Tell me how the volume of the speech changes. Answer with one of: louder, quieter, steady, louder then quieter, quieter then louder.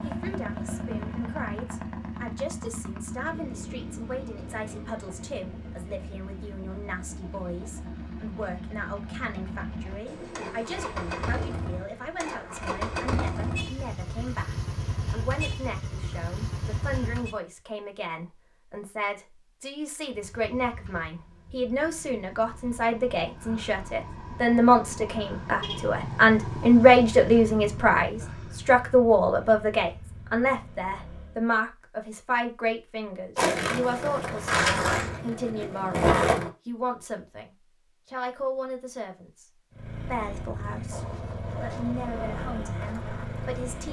louder then quieter.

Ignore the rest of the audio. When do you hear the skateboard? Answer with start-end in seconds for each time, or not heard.
33.4-36.5, 40.9-43.8.